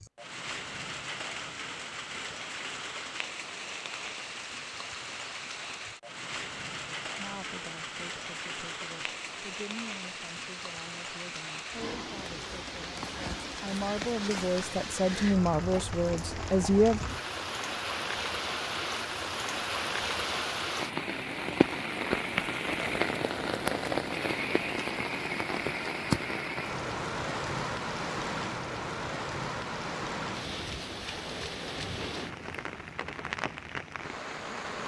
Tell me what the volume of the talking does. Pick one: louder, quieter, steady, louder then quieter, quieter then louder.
louder.